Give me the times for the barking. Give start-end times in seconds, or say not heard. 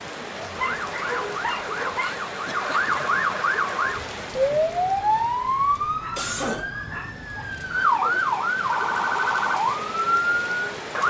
0.6-2.1, 6.0-8.3.